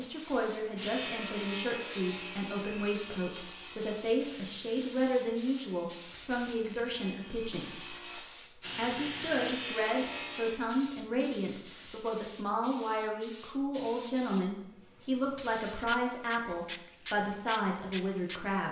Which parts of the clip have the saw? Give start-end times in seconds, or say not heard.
0.8-10.6.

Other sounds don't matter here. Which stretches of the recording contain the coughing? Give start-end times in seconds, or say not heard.
not heard.